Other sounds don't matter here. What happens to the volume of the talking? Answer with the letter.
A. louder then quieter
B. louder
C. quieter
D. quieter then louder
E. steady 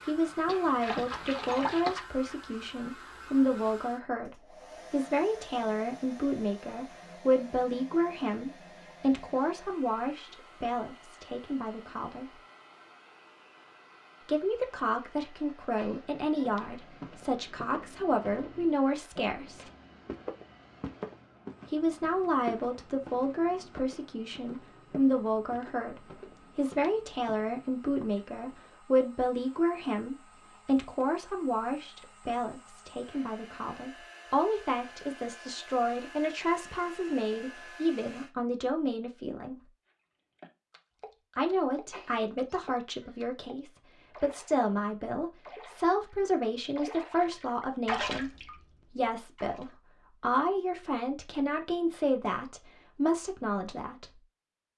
E.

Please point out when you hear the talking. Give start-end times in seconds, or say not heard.
0.0-12.3, 14.2-19.6, 21.6-39.7, 41.4-54.2.